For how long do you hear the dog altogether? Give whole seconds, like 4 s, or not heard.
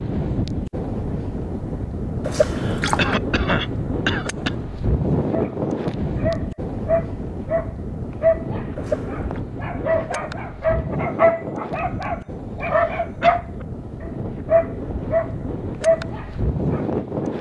12 s.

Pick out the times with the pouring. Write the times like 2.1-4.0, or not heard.
2.2-3.1, 8.8-9.4.